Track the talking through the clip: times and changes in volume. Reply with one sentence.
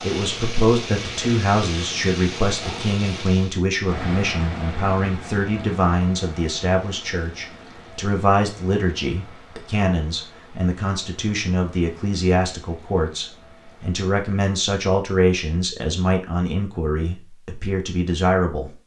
You can hear the talking from 0.0 to 18.8 s, at a steady volume.